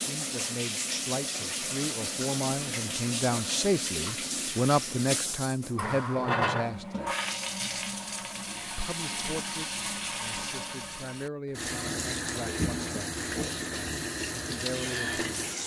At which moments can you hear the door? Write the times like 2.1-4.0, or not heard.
not heard.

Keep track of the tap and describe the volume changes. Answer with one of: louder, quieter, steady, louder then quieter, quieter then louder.
steady.